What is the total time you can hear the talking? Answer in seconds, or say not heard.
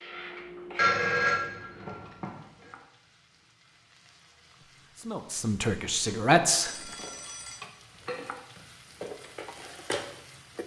2 s.